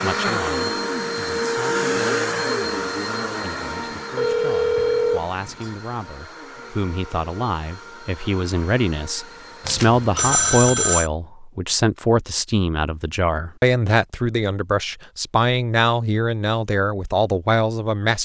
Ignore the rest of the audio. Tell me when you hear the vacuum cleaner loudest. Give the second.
2 s.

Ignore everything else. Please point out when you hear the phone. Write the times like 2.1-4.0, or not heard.
4.2-5.8, 9.7-11.1.